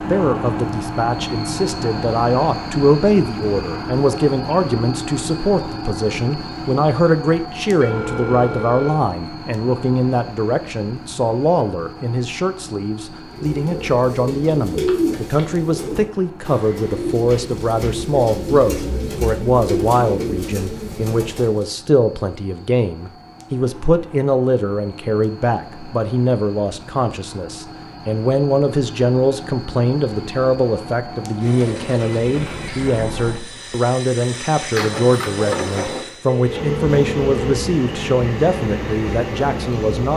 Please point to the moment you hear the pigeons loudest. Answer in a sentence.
The volume of the pigeons peaks at 15 seconds.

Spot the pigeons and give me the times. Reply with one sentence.
The pigeons can be heard from 13.2 to 21.6 s.